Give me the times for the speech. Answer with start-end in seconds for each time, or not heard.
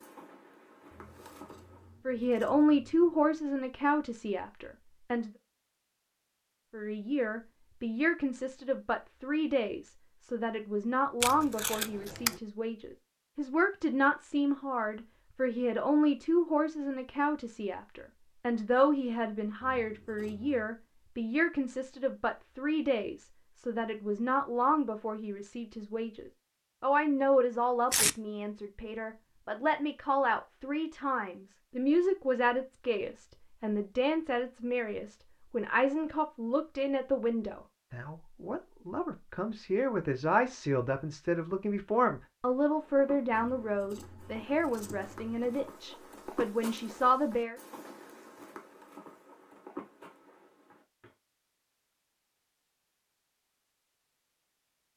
2.0-5.3, 6.7-47.6.